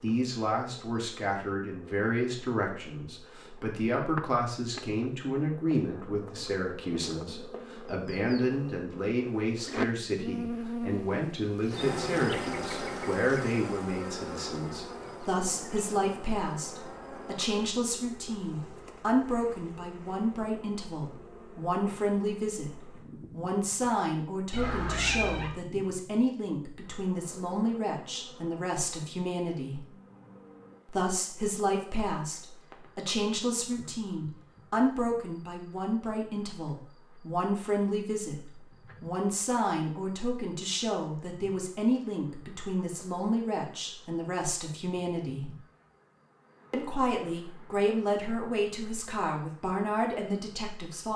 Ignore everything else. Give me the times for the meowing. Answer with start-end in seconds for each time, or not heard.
24.5-25.6.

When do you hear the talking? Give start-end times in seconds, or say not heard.
0.0-29.9, 30.9-45.5, 46.7-51.1.